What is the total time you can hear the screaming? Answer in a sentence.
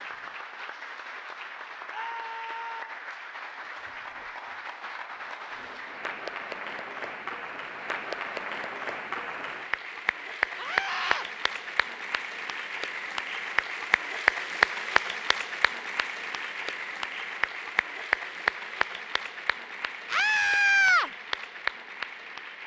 The screaming can be heard for 3 seconds in total.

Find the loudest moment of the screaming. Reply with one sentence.
The volume of the screaming peaks at 21 seconds.